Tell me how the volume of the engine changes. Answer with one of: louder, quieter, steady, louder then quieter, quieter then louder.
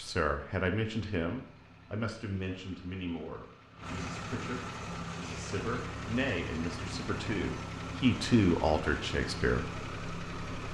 louder.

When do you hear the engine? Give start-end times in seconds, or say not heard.
0.0-10.7.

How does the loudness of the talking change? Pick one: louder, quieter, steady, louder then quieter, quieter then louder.
quieter then louder.